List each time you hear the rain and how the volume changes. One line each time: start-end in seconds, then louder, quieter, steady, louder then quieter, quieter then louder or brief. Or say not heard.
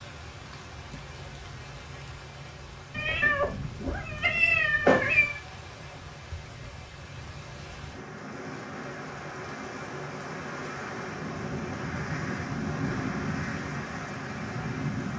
0.0-15.1 louder.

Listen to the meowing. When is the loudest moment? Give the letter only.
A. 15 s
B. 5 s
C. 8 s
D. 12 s
B.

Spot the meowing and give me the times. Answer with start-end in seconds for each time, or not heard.
2.9-5.3.